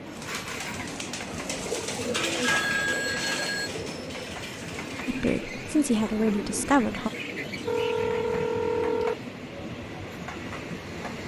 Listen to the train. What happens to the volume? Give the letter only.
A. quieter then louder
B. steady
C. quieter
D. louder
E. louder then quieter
B.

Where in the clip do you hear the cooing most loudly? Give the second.
2 s.